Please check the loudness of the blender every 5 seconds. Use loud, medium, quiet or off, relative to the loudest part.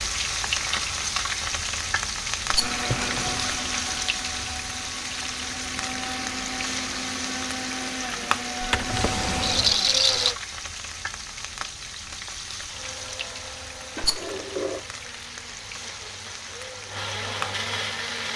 loud, loud, medium, loud.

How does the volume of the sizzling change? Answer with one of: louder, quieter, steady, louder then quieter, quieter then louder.
quieter.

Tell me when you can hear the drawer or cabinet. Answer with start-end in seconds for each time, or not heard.
2.8-3.5, 8.6-9.8, 13.9-14.8.